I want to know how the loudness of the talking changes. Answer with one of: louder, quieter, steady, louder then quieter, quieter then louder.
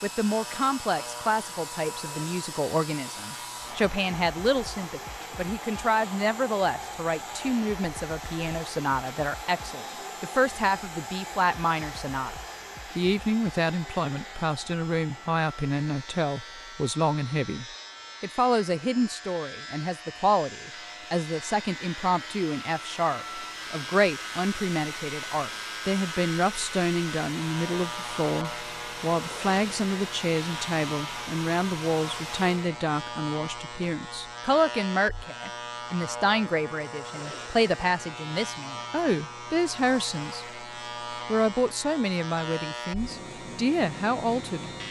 steady.